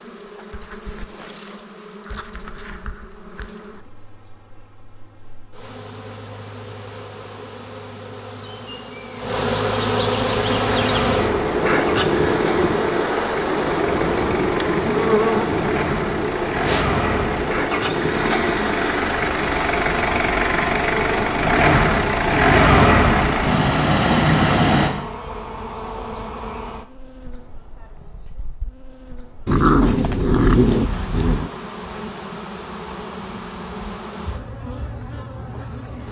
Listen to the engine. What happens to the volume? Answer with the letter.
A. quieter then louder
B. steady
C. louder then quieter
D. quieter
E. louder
E.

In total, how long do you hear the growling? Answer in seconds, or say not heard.
2 s.